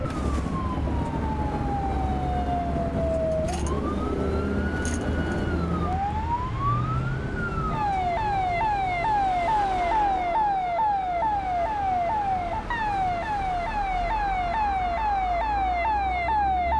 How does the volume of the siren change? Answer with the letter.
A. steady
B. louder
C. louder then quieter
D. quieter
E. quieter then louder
A.